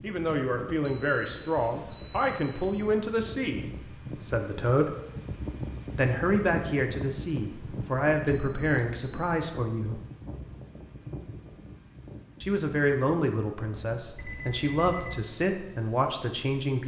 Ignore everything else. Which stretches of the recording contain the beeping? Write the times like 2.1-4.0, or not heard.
0.8-2.7, 7.4-9.2, 14.2-15.2.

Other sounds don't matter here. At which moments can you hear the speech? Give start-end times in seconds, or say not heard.
0.0-3.6, 4.2-4.9, 6.0-10.0, 12.4-16.8.